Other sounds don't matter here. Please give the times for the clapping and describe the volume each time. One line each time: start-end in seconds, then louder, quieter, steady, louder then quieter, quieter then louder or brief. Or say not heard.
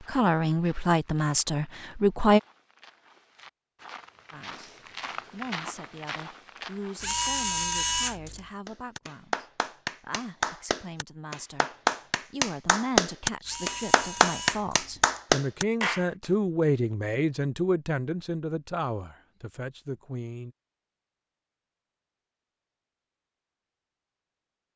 8.7-16.2 louder.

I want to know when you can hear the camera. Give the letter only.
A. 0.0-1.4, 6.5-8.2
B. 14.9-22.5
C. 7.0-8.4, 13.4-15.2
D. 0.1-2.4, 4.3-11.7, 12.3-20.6
C.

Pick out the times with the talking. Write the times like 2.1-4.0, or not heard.
0.1-2.4, 4.3-11.7, 12.3-20.6.